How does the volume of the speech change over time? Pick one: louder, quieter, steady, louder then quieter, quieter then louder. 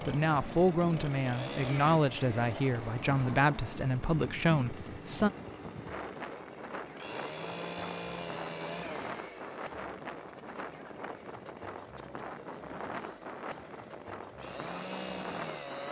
steady.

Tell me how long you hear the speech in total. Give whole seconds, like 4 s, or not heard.
5 s.